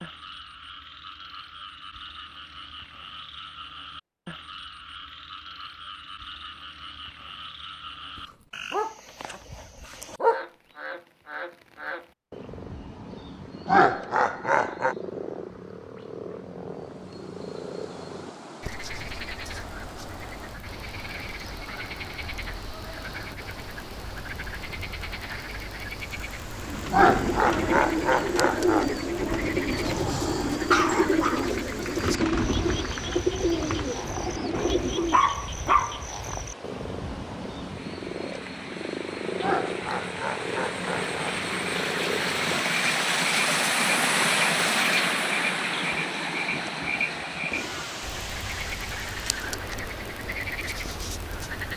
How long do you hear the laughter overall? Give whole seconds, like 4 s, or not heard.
5 s.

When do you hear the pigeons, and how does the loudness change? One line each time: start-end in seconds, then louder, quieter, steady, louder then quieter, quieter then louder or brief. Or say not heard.
26.6-35.2 steady.